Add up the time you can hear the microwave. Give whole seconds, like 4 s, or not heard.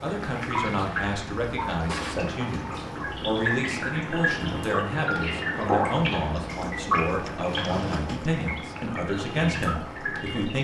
not heard.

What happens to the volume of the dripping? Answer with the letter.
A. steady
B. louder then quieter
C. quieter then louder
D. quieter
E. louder
B.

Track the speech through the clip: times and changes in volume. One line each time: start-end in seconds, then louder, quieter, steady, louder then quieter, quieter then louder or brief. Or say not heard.
0.0-10.5 steady.